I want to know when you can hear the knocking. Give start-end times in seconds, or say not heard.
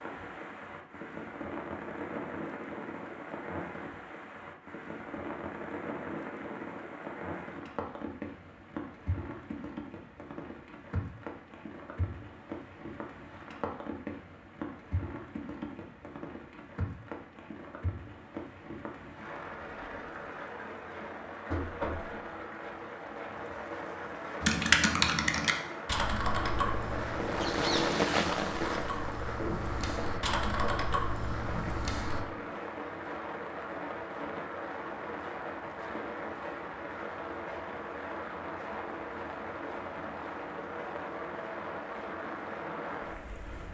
21.5-22.1.